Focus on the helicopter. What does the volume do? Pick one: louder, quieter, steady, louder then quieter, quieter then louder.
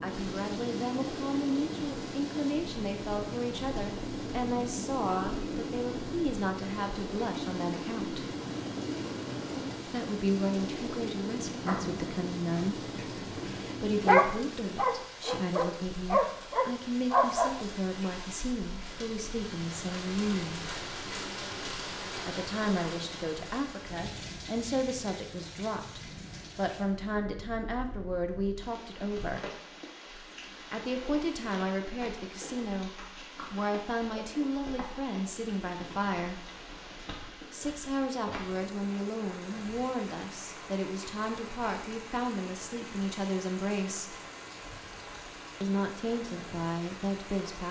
steady.